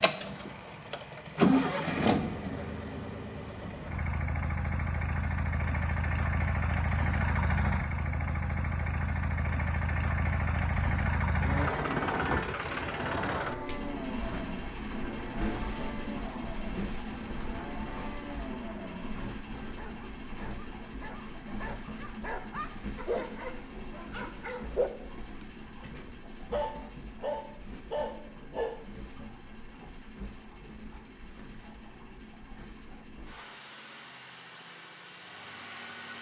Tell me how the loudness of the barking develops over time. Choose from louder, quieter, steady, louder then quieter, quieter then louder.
louder.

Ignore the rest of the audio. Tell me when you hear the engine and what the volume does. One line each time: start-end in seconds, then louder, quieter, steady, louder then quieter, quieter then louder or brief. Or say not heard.
0.0-36.1 quieter.